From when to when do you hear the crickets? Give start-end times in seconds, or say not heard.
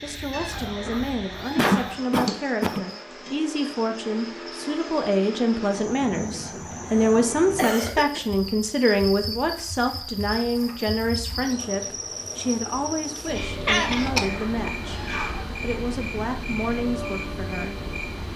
0.0-18.3.